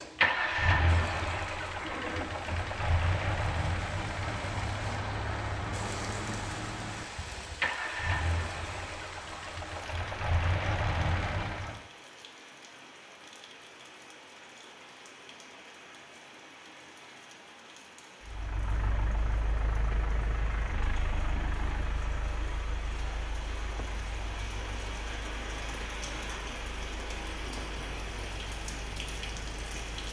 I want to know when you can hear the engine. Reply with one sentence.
You can hear the engine from 0.1 to 11.8 s and from 18.2 to 30.0 s.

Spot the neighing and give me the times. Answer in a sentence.
You can hear the neighing from 1.8 to 2.5 s.